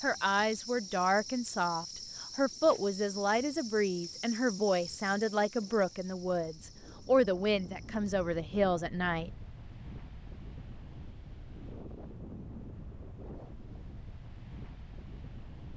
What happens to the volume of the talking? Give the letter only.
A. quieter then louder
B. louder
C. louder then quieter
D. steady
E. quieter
D.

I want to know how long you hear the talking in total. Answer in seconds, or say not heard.
9 s.